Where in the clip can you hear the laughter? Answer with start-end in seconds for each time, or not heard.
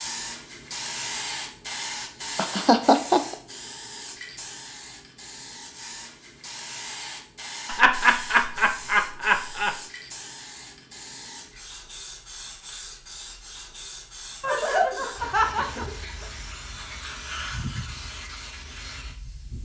2.4-3.4, 7.7-9.8, 14.4-16.2.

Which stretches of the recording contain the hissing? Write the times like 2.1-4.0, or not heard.
0.0-19.6.